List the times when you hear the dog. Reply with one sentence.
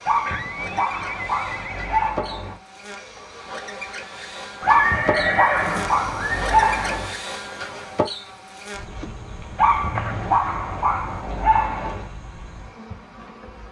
You can hear the dog from 0.1 to 2.6 s, from 4.7 to 7.2 s and from 9.6 to 12.1 s.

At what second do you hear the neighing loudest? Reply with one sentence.
The loudest moment of the neighing is at 5 seconds.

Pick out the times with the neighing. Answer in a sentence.
You can hear the neighing from 0.2 to 2.1 s, from 4.6 to 6.8 s and from 9.9 to 10.4 s.